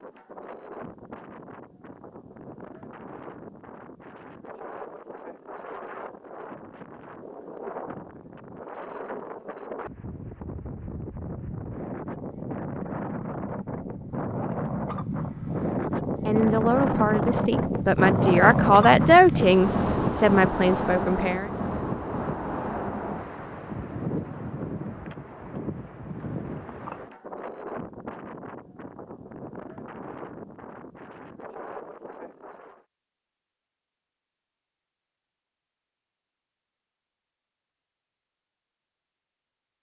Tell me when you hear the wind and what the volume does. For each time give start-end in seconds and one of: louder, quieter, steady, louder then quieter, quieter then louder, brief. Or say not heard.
0.0-32.9 louder then quieter.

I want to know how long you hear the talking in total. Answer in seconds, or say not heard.
5 s.